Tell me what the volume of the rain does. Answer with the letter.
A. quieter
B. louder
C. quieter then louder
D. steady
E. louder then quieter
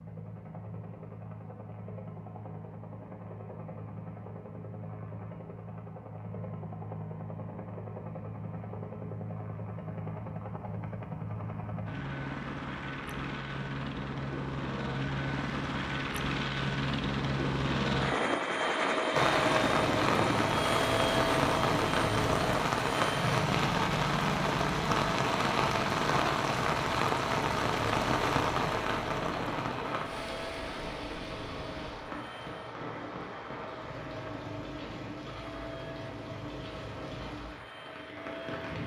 A.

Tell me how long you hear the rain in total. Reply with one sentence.
The rain can be heard for 20 seconds in total.